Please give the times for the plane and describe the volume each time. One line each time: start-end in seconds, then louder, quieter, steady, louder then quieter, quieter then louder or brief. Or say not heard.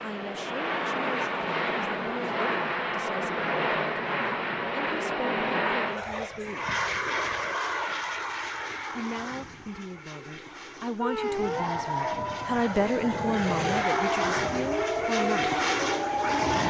0.0-16.6 quieter then louder.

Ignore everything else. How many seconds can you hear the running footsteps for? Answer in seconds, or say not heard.
not heard.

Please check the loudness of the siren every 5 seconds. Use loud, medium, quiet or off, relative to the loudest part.
off, off, loud, loud.